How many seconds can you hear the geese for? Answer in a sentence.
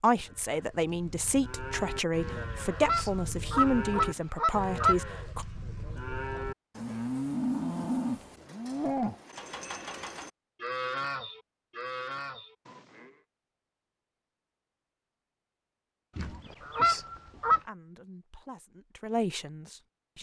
The geese can be heard for 4 seconds in total.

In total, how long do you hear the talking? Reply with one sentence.
You can hear the talking for 8 seconds altogether.